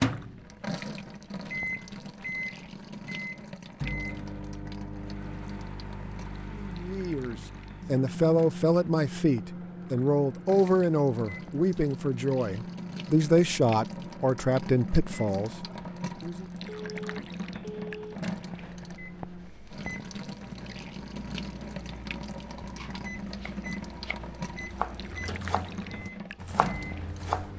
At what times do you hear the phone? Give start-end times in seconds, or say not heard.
16.6-18.1.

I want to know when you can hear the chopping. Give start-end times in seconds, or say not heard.
22.6-27.5.